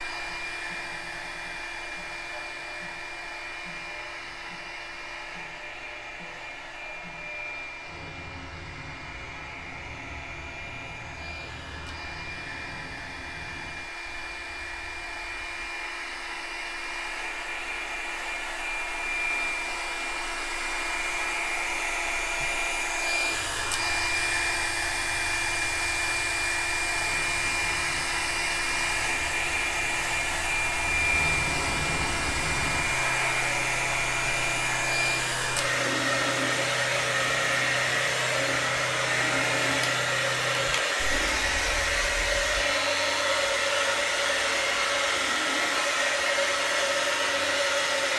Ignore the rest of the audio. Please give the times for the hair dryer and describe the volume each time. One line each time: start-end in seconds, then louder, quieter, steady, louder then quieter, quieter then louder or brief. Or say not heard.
0.0-48.1 louder.